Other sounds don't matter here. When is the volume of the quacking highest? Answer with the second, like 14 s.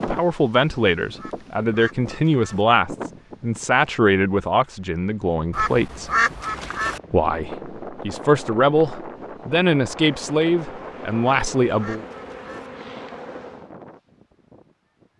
6 s.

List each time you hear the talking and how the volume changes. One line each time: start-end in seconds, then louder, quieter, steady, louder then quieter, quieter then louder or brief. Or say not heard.
0.1-6.1 quieter
7.1-12.1 steady.